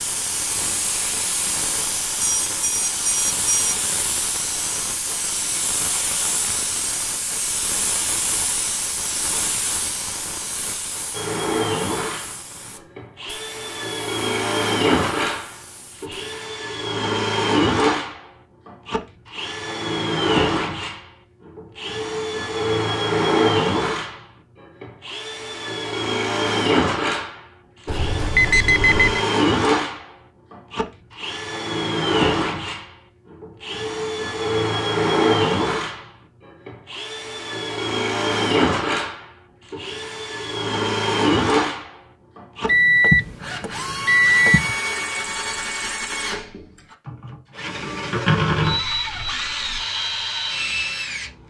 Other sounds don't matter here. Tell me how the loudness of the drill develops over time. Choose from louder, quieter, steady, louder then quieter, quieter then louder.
steady.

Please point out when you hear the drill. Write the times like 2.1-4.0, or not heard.
11.1-51.4.